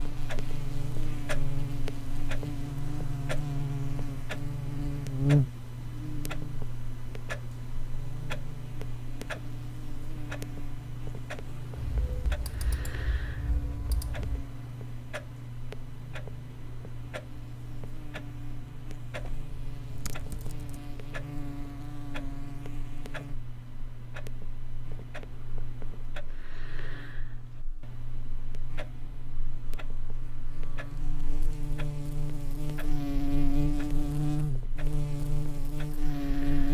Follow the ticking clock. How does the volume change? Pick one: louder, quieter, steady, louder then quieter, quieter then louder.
quieter.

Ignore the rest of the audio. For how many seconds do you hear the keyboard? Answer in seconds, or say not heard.
4 s.